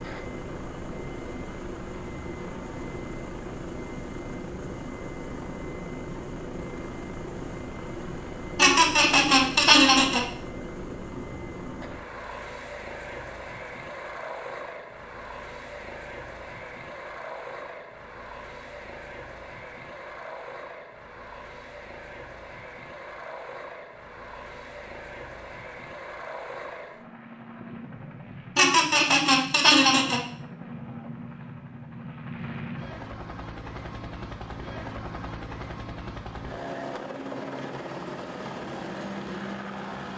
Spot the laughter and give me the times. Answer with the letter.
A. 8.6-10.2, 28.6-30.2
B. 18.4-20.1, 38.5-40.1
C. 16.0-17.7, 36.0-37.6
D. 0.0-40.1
A.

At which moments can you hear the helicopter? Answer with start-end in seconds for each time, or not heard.
0.0-40.1.